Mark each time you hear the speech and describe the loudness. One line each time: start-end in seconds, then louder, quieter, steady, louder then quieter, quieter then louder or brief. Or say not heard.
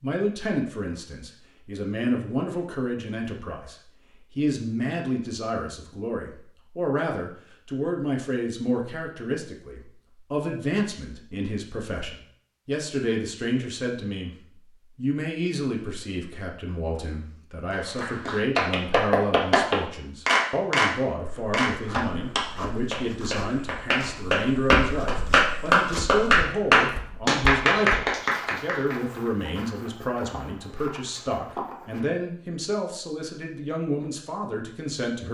0.0-14.3 steady
14.9-35.2 steady.